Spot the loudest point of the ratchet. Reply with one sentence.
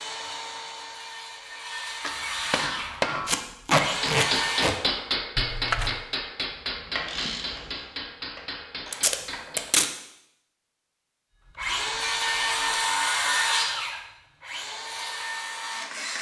The loudest moment of the ratchet is at 7 seconds.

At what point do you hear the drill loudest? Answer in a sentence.
The volume of the drill peaks at 13 seconds.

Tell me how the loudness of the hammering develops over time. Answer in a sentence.
The loudness of the hammering goes down.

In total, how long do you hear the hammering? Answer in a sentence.
You can hear the hammering for 8 seconds altogether.